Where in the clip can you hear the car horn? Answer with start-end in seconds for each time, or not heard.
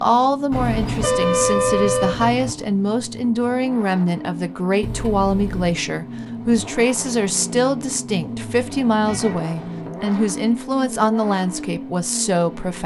0.5-2.5, 4.8-5.8, 9.0-9.4.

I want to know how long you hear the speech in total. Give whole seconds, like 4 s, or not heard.
13 s.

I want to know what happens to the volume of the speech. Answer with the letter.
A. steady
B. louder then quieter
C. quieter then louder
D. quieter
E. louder
A.